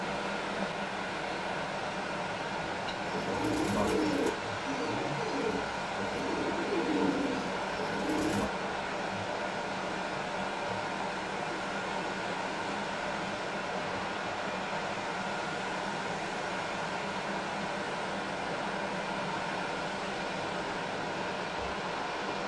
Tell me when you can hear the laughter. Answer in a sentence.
You can't hear the laughter here.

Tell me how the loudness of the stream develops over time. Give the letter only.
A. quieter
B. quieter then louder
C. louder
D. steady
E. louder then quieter
D.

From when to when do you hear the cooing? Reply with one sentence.
The cooing can be heard from 3.0 to 8.5 s.